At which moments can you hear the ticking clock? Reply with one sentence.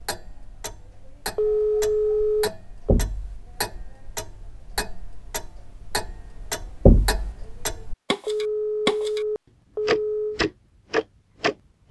The ticking clock can be heard from 0.0 to 9.2 s and from 9.8 to 11.8 s.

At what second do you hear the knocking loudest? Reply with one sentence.
The loudest moment of the knocking is at 7 seconds.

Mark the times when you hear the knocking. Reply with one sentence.
You can hear the knocking from 2.9 to 3.4 s and from 6.8 to 7.3 s.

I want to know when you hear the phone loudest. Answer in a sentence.
The loudest moment of the phone is at 2 seconds.